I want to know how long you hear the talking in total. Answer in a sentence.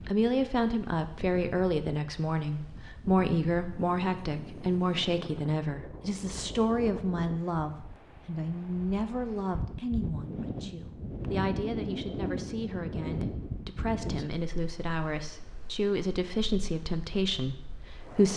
The talking can be heard for 18 seconds in total.